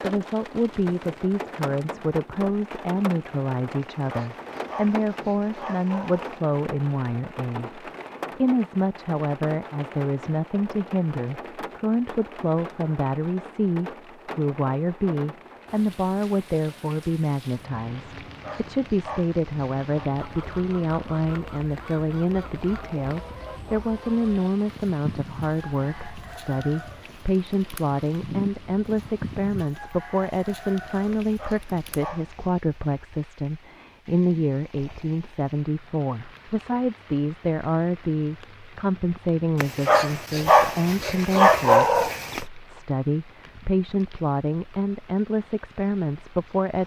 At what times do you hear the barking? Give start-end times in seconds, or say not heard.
3.8-6.4, 18.1-20.1, 31.1-32.5, 39.6-42.4.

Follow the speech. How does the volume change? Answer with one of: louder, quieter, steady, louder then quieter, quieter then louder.
steady.